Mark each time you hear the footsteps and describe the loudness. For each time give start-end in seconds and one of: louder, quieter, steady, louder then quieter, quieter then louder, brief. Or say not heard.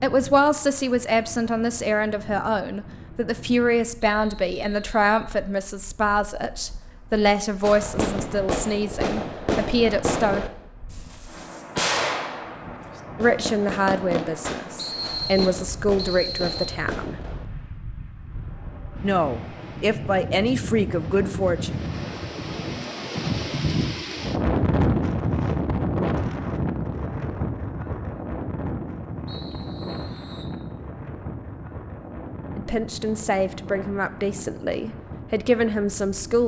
not heard.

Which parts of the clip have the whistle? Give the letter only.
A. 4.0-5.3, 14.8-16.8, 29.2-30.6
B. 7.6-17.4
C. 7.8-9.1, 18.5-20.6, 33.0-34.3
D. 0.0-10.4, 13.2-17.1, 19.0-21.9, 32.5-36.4
A.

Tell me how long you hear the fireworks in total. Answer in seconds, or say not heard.
10 s.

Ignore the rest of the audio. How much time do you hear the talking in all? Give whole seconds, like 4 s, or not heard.
21 s.